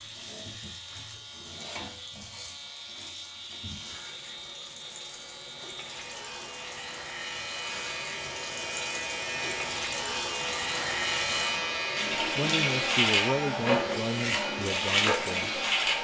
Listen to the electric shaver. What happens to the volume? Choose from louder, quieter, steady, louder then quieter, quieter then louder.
louder.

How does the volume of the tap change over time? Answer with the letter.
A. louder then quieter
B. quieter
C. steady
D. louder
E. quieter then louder
D.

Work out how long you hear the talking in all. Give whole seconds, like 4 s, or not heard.
4 s.